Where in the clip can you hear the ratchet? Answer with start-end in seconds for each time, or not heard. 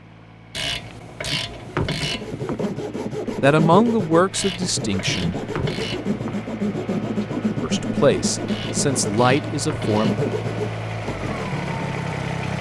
0.5-2.5, 4.3-6.5, 8.4-10.2.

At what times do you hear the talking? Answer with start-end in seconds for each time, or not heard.
3.4-5.3, 7.6-10.2.